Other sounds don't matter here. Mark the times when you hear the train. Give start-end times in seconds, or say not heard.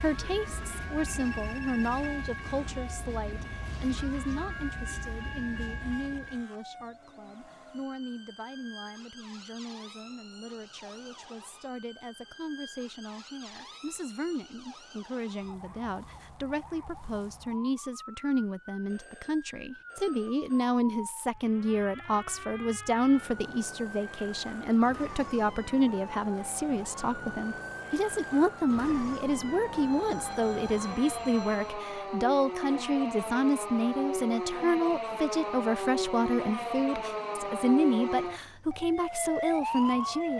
0.0-6.5.